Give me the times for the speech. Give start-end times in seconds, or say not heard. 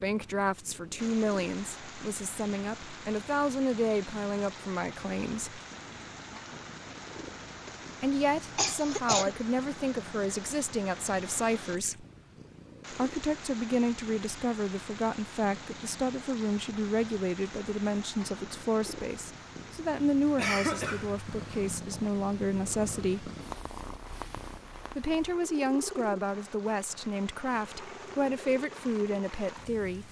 0.0-5.6, 8.0-12.1, 12.9-23.3, 24.9-30.0.